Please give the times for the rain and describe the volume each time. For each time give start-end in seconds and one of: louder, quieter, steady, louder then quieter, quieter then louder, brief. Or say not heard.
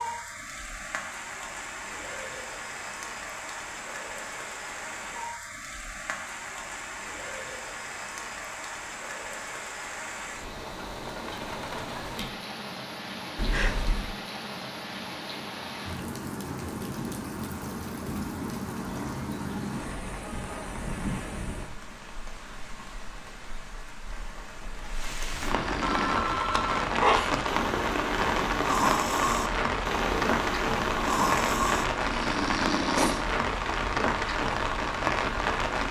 0.0-35.8 louder.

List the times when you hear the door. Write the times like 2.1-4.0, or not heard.
not heard.